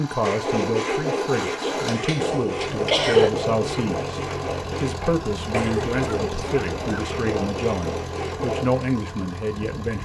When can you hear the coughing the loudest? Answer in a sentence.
The loudest moment of the coughing is at 3 seconds.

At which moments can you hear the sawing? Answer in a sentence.
You can hear the sawing from 0.2 to 8.7 s.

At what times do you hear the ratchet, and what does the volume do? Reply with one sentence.
The ratchet can't be heard in this clip.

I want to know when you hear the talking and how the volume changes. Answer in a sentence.
The talking can be heard from 0.0 to 10.0 s, at a steady volume.